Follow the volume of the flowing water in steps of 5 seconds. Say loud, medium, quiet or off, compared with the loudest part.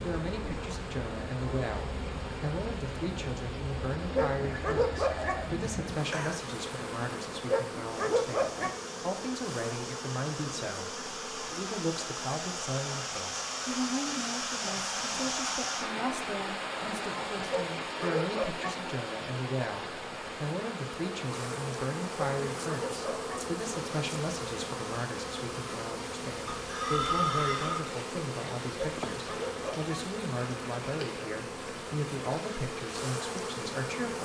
medium, medium, loud, loud, medium, medium, medium.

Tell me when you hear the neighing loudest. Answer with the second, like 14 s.
27 s.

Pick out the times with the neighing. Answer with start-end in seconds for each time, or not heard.
4.3-6.3, 26.5-27.8.